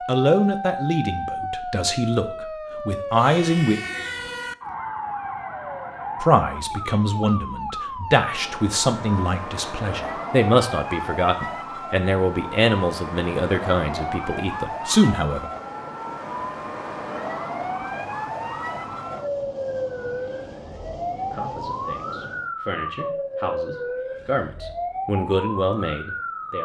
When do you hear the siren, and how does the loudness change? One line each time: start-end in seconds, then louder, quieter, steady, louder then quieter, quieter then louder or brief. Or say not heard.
0.0-26.6 steady.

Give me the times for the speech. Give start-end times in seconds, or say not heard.
0.1-3.8, 6.2-15.5, 21.2-26.6.